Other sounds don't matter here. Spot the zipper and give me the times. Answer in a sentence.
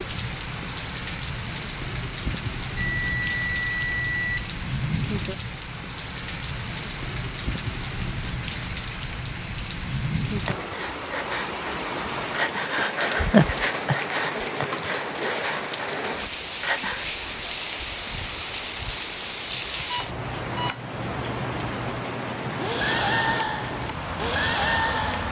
The zipper can't be heard in this clip.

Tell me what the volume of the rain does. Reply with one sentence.
The loudness of the rain stays about the same.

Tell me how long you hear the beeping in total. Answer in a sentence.
The beeping can be heard for 3 seconds in total.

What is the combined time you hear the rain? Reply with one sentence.
You can hear the rain for 25 seconds altogether.